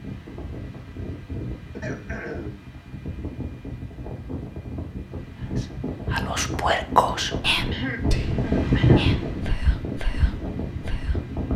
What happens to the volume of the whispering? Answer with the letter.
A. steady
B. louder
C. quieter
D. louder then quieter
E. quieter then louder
C.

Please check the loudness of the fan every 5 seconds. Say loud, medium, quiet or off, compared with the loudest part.
medium, loud, medium.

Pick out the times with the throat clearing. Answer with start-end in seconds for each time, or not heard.
1.7-2.6, 7.7-9.1.